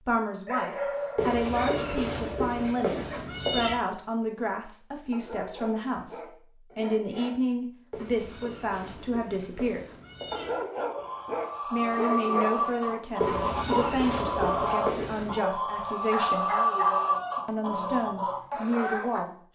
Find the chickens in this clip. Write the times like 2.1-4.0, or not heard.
10.8-19.2.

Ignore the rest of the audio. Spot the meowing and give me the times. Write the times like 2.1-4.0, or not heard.
1.1-3.8, 7.9-10.7, 13.2-15.4.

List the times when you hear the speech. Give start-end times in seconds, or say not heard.
0.0-9.8, 11.7-16.5, 17.4-19.5.